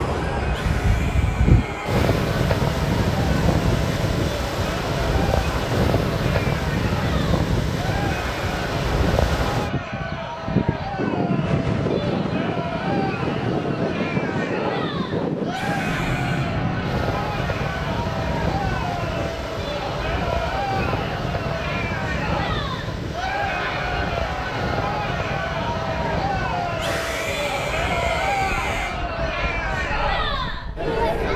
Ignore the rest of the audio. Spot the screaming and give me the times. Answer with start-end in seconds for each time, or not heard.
0.5-2.0, 15.4-16.6, 26.7-29.0.